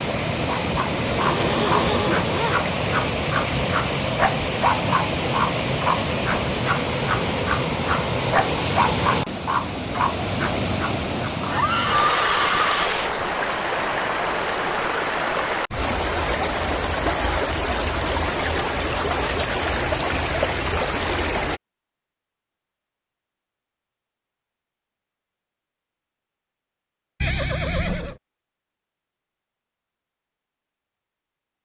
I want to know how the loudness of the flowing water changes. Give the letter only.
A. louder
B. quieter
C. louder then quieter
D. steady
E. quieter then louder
D.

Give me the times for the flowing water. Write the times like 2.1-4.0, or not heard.
0.0-21.6.